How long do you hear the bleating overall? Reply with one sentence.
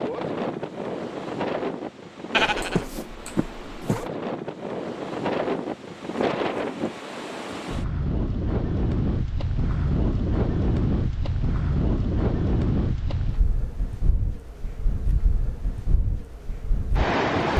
You can hear the bleating for 2 seconds altogether.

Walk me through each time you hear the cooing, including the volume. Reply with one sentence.
The cooing can't be heard in this clip.